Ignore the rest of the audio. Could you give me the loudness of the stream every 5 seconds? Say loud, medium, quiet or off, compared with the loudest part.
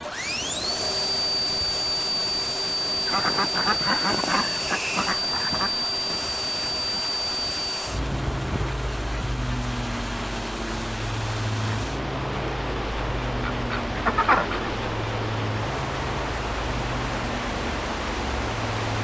medium, medium, loud, loud.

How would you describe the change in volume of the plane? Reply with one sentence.
The loudness of the plane goes down.